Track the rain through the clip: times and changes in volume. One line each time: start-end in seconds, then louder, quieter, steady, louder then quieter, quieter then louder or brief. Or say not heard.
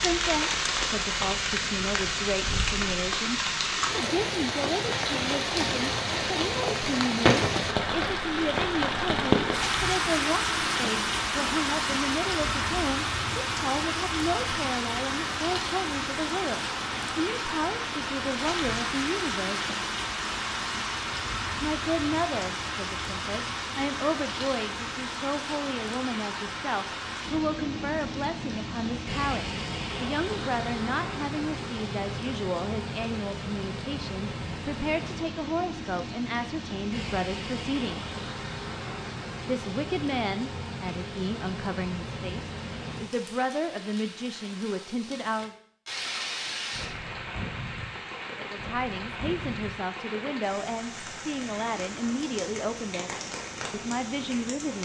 0.0-54.7 quieter.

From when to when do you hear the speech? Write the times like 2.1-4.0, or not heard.
0.0-19.7, 21.6-38.1, 39.5-45.5, 48.4-53.1, 53.7-54.7.